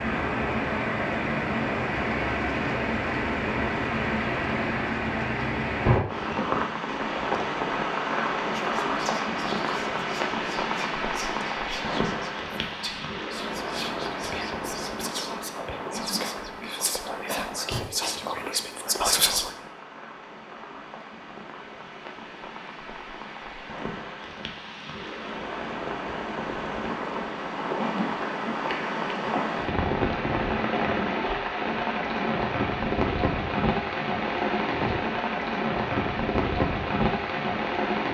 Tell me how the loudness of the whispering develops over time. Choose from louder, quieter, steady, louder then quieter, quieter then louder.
louder.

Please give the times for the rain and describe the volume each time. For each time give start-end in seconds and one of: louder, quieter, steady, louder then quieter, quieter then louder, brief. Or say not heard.
0.0-38.0 quieter then louder.